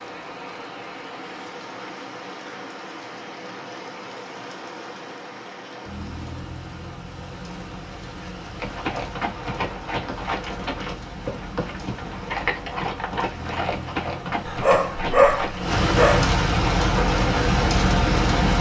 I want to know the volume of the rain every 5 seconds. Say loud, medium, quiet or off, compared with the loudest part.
quiet, quiet, quiet, loud.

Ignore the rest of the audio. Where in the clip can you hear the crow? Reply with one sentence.
You can't hear the crow here.